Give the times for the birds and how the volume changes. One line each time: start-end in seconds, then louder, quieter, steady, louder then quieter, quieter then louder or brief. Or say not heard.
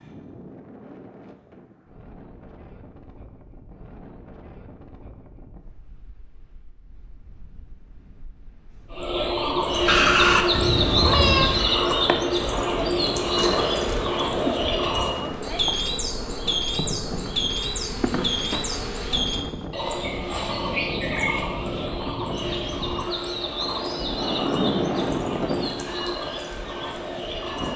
8.9-27.7 quieter.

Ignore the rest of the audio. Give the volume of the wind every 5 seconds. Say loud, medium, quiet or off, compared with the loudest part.
quiet, quiet, medium, medium, loud, loud.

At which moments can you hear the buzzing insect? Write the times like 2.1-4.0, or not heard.
9.6-19.5.